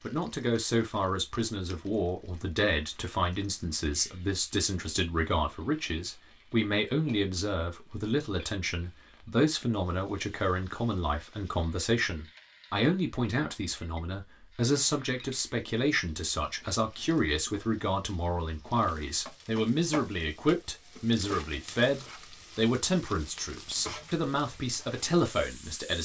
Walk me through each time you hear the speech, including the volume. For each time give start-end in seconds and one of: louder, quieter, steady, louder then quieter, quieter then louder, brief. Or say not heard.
0.0-26.0 steady.